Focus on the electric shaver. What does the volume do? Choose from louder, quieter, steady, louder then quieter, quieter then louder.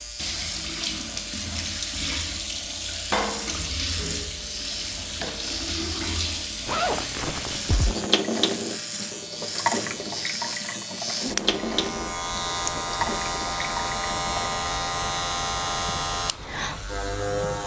louder.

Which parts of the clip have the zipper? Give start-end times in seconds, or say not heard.
6.7-8.1.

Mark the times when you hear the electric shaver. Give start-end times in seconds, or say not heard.
0.0-17.6.